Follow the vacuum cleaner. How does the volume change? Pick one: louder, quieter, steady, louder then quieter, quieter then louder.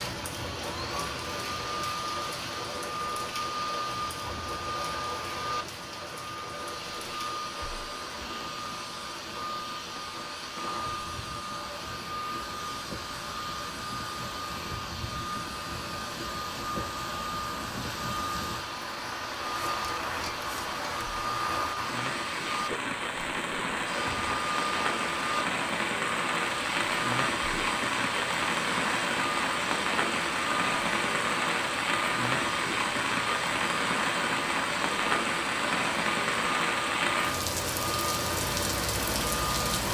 steady.